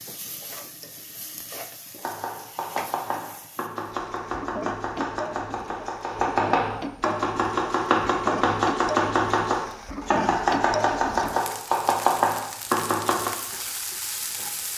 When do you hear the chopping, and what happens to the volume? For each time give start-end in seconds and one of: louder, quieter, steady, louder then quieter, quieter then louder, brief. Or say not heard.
2.0-13.3 louder.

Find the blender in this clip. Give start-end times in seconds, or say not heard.
not heard.